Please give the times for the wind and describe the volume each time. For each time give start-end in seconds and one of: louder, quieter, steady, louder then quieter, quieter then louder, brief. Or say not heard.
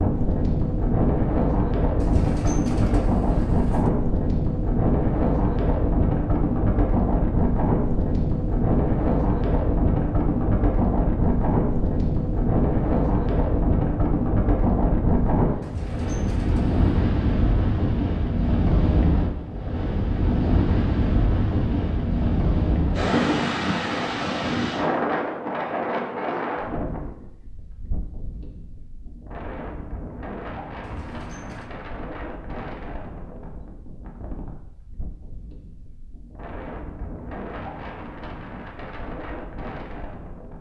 0.0-40.5 quieter.